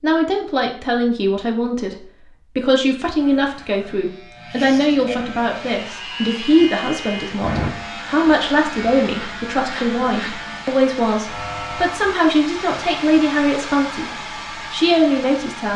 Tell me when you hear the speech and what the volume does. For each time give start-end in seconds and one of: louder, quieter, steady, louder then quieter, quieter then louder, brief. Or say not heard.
0.0-14.1 steady
14.7-15.7 brief.